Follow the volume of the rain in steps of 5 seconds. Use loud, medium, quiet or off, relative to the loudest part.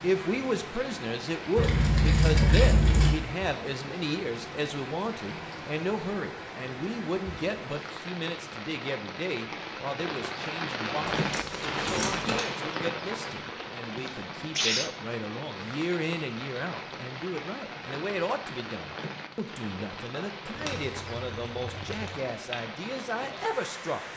medium, medium, loud, medium, medium.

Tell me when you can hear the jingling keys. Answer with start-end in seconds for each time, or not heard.
1.6-3.1, 11.1-12.4, 20.6-22.1.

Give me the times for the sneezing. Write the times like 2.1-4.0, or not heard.
13.4-14.9.